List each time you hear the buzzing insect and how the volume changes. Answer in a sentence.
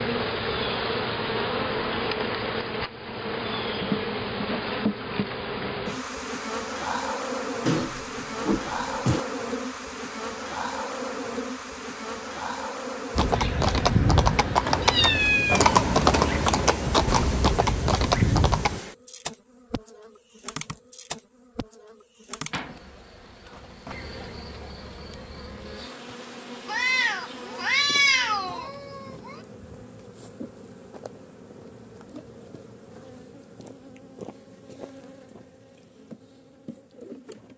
You can hear the buzzing insect from 0.0 to 37.5 s, getting quieter.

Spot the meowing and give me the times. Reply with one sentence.
The meowing can be heard from 7.7 to 9.2 s, from 14.7 to 16.6 s and from 26.6 to 29.4 s.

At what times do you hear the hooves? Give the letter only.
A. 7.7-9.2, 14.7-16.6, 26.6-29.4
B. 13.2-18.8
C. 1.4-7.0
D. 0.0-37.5
B.